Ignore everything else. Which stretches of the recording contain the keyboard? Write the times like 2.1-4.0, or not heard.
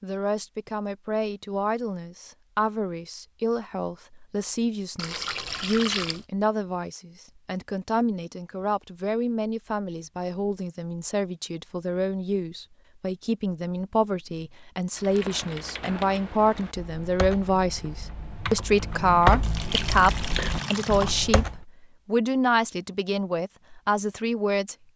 14.9-21.6.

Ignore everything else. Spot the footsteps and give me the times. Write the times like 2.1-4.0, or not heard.
not heard.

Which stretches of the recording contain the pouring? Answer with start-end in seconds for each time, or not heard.
5.0-6.2, 19.4-21.1.